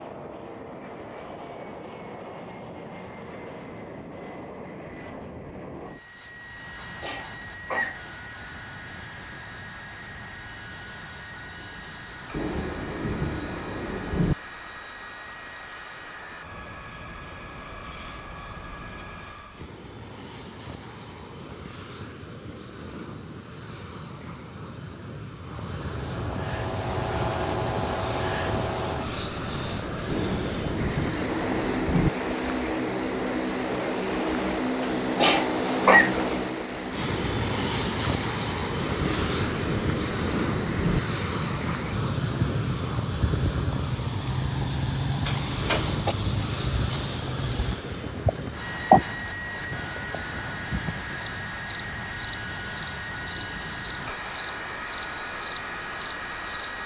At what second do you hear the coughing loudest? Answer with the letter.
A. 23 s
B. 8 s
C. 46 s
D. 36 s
D.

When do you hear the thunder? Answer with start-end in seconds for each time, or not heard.
12.3-14.3, 30.1-32.1, 39.0-41.0.